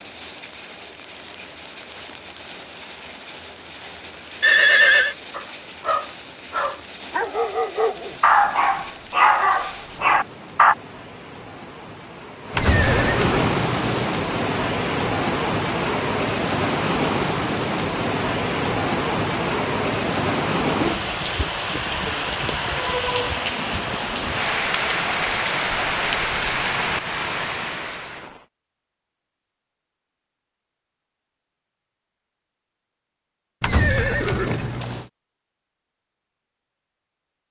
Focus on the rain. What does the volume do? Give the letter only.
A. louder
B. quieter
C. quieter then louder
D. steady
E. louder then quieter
A.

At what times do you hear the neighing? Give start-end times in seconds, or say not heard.
4.4-5.2, 12.5-14.1, 33.6-35.0.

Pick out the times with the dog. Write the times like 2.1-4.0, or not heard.
5.3-10.8.